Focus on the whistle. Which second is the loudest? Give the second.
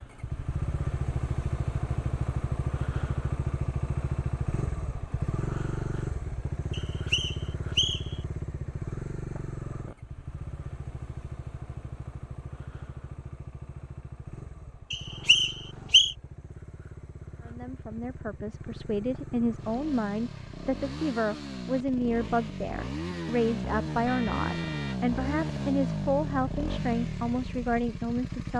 16 s.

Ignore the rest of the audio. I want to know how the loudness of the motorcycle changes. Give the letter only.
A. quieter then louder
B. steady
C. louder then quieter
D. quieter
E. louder
A.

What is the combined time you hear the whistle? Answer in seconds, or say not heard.
3 s.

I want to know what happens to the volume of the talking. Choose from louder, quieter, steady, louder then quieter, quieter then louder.
steady.